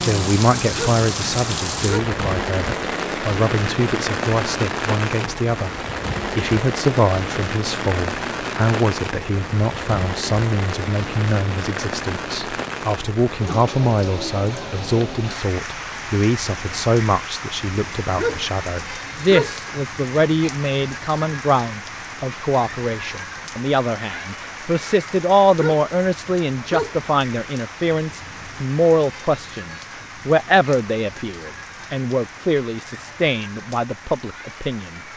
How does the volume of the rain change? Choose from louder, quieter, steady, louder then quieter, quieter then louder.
quieter.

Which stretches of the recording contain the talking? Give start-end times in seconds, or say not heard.
0.1-5.8, 6.3-35.0.